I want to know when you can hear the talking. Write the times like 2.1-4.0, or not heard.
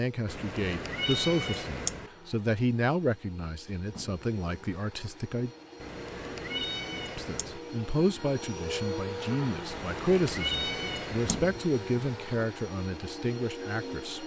0.0-5.5, 7.2-14.2.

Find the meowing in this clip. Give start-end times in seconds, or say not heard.
0.2-2.1, 5.8-7.6, 9.7-11.5.